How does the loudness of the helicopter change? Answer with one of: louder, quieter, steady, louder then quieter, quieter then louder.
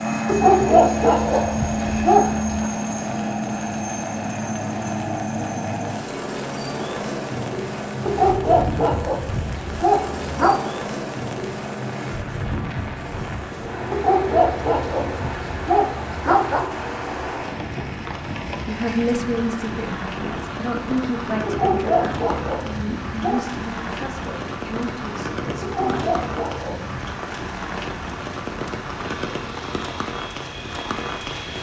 quieter.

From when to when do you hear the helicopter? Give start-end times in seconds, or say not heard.
0.0-31.5.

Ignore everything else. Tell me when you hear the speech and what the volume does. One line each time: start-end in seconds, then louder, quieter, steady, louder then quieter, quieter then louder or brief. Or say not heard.
18.6-26.1 quieter.